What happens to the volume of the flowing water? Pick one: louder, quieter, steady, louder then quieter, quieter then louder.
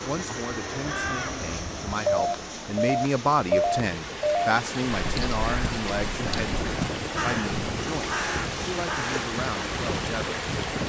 louder.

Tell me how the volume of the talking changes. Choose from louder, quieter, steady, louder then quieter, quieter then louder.
louder then quieter.